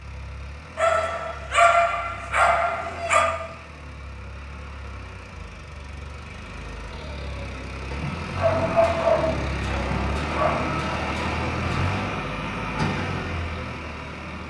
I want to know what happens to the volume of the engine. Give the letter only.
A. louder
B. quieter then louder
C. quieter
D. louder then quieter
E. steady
A.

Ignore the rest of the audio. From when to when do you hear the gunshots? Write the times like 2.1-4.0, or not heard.
8.4-12.2.